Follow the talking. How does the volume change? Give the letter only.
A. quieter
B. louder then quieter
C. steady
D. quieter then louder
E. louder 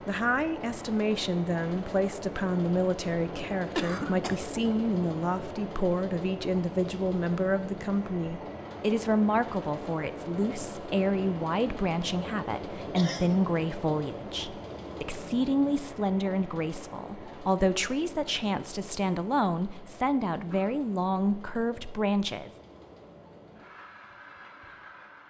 C.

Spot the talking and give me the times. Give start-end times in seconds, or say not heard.
0.1-22.5.